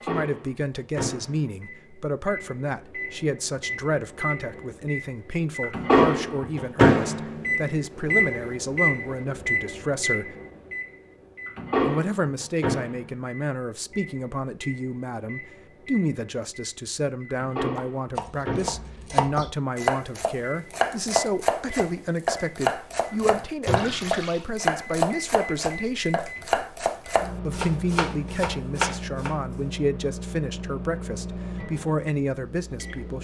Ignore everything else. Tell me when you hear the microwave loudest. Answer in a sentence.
The loudest moment of the microwave is at 6 seconds.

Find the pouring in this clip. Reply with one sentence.
The pouring can be heard from 23.8 to 24.5 s.